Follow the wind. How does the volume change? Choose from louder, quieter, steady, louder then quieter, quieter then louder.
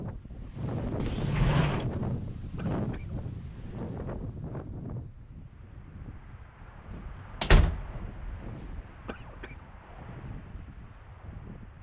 quieter.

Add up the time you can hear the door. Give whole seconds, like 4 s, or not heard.
3 s.